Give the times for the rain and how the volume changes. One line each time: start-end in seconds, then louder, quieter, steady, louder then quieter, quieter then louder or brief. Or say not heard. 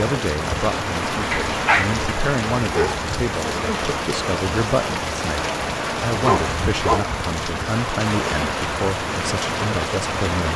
0.0-10.5 steady.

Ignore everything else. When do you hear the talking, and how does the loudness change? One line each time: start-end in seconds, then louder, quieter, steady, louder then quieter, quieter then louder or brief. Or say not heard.
0.0-10.5 steady.